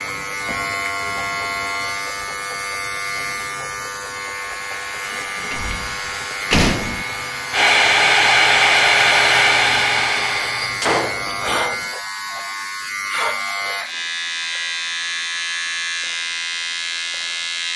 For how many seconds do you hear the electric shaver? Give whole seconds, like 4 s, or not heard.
18 s.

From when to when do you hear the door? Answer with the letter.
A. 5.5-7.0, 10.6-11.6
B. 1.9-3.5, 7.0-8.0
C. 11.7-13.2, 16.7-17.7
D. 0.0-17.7
A.